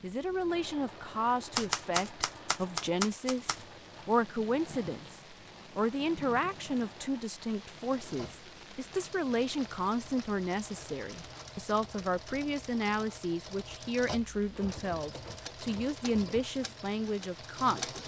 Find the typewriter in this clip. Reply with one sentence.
You can hear the typewriter from 1.5 to 3.6 s and from 14.5 to 16.4 s.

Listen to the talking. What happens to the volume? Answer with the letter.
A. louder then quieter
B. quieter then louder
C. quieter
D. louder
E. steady
E.